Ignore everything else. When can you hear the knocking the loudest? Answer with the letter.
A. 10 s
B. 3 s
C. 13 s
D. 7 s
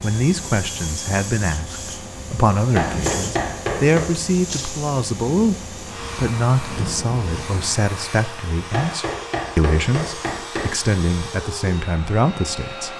B.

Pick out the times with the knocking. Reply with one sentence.
The knocking can be heard from 2.8 to 4.1 s and from 8.7 to 10.8 s.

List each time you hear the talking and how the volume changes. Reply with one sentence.
You can hear the talking from 0.0 to 12.9 s, at a steady volume.